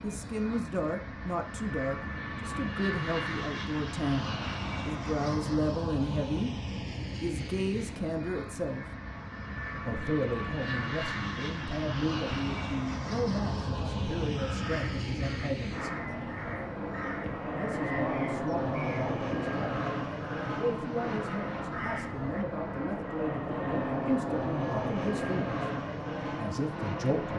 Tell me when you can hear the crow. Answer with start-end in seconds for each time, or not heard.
14.3-22.4.